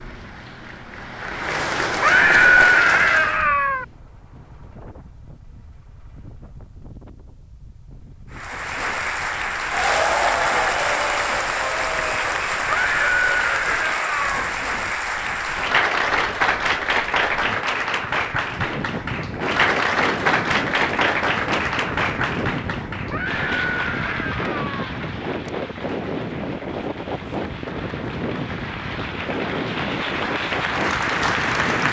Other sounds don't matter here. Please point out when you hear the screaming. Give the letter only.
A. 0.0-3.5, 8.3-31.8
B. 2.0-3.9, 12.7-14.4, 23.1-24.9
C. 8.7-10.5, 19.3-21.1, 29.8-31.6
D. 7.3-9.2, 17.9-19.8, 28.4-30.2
B.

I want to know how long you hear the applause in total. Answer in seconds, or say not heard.
27 s.